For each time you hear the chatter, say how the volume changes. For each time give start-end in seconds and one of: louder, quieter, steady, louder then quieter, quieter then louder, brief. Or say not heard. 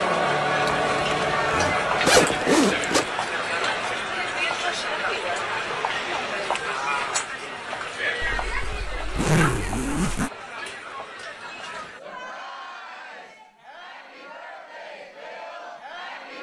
0.0-16.3 quieter.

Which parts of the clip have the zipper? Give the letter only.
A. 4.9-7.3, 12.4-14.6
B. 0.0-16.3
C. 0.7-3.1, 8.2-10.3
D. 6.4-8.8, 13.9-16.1
C.